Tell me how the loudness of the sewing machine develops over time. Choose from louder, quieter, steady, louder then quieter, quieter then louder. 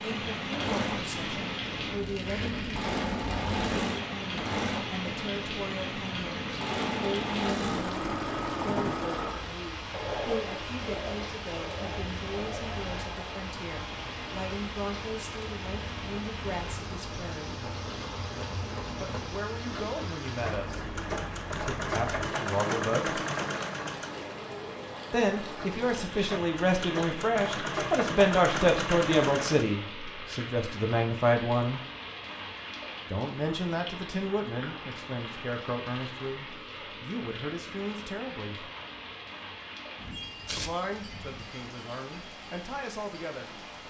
quieter then louder.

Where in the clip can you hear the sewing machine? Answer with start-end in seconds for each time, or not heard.
0.0-29.6.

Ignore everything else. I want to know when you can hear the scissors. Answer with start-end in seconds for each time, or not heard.
not heard.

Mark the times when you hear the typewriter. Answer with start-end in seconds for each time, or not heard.
not heard.